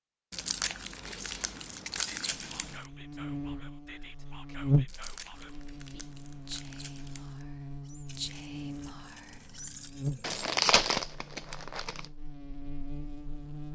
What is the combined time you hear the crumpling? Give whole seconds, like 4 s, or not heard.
7 s.